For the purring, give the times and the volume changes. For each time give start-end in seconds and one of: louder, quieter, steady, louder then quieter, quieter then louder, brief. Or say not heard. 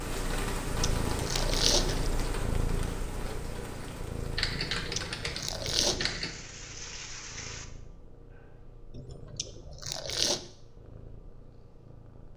0.0-12.3 quieter.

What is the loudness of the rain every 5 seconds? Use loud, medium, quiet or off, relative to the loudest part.
loud, medium, off.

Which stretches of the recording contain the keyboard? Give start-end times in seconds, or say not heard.
4.3-6.3.